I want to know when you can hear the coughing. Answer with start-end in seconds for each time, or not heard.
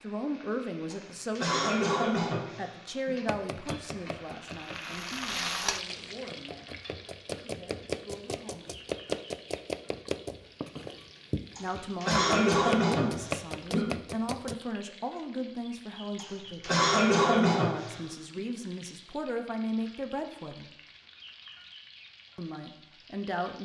0.9-3.1, 11.6-13.9, 16.1-18.4.